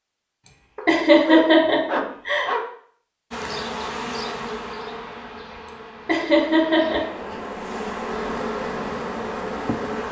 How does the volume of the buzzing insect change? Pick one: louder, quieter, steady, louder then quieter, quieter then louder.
quieter then louder.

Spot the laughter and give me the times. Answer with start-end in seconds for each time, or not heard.
0.5-2.5, 5.7-7.2.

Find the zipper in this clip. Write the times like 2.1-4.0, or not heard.
not heard.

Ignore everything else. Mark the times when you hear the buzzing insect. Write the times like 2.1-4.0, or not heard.
3.3-10.0.